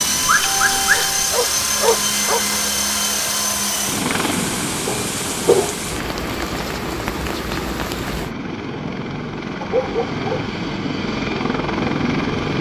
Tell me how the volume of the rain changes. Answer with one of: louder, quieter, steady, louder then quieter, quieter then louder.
steady.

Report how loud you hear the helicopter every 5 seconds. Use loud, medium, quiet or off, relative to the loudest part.
loud, medium, loud.